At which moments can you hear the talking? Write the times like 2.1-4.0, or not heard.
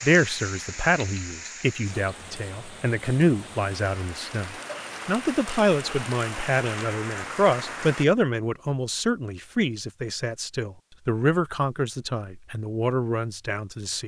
0.0-14.0.